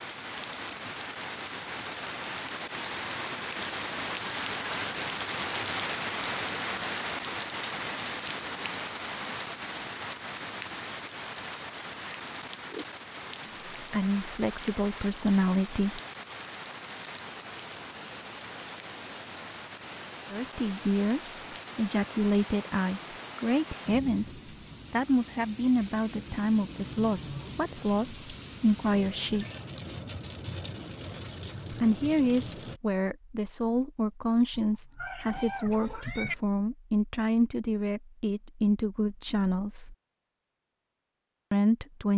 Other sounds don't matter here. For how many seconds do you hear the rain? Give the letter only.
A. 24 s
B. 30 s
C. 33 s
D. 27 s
C.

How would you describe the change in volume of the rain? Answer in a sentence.
The loudness of the rain goes down.